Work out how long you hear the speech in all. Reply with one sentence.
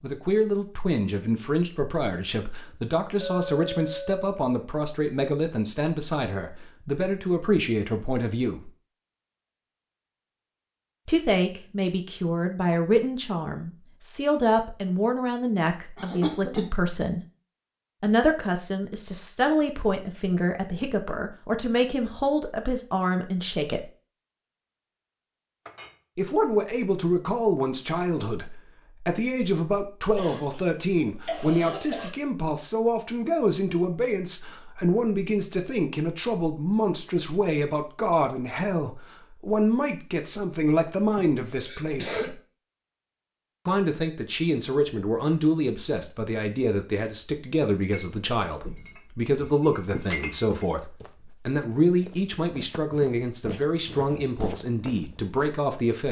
You can hear the speech for 49 seconds altogether.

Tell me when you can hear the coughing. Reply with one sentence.
The coughing can be heard from 15.9 to 16.7 s, from 30.1 to 32.1 s and from 41.1 to 42.4 s.